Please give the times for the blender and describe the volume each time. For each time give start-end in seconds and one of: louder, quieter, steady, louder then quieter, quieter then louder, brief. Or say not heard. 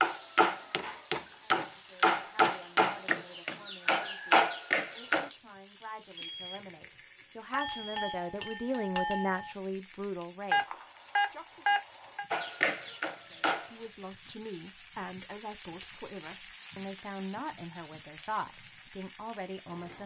not heard.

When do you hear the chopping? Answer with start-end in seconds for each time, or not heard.
0.0-5.3, 12.3-13.8.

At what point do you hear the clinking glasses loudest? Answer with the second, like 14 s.
9 s.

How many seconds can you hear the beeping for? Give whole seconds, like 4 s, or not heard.
3 s.